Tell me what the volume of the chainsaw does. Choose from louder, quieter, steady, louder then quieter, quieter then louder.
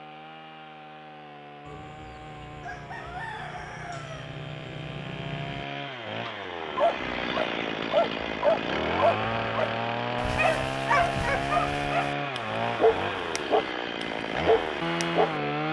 louder.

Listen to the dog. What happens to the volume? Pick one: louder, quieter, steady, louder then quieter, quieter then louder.
steady.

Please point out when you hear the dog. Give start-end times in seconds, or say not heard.
6.8-15.3.